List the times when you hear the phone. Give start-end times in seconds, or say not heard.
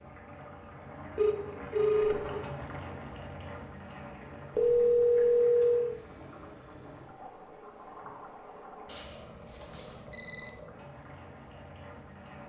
1.1-2.5, 4.5-5.9, 8.8-10.6.